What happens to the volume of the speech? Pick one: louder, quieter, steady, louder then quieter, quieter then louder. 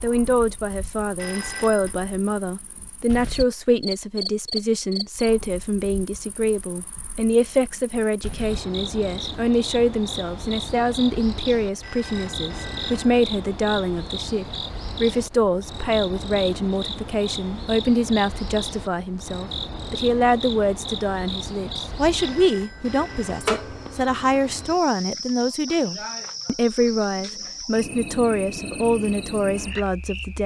steady.